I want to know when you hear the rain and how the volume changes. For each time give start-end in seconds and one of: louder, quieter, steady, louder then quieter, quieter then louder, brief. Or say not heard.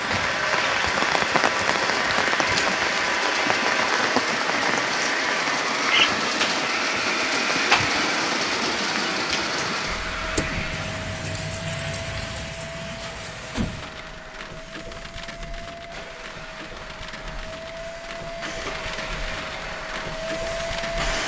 0.0-21.2 quieter.